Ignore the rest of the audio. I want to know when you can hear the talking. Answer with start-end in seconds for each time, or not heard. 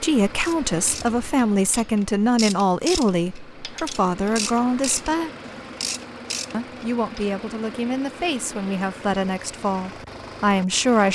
0.0-5.3, 6.5-11.0.